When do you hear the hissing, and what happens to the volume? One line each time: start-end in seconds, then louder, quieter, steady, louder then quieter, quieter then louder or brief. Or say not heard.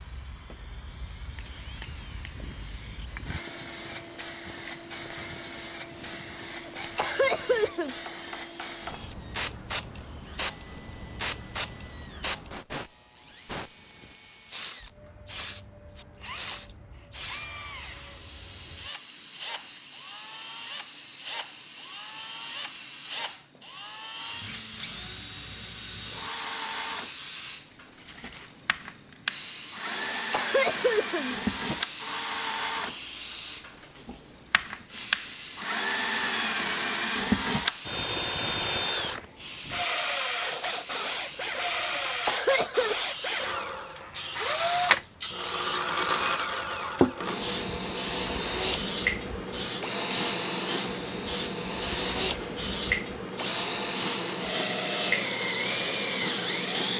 0.0-56.9 louder.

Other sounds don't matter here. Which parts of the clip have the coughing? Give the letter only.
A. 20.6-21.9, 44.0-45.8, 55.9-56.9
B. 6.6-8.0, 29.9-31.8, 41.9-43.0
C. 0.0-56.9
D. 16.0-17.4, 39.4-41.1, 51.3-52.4
B.